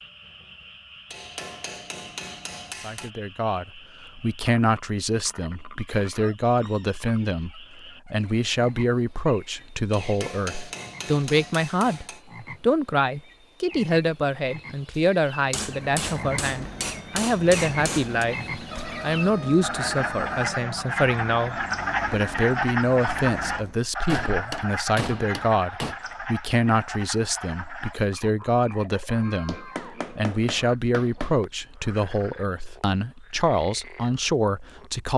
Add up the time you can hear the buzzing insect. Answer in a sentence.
The buzzing insect can't be heard in this clip.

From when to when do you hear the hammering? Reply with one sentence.
You can hear the hammering from 1.1 to 3.1 s, from 9.9 to 12.2 s, from 15.5 to 18.2 s, from 24.1 to 25.9 s and from 29.4 to 31.4 s.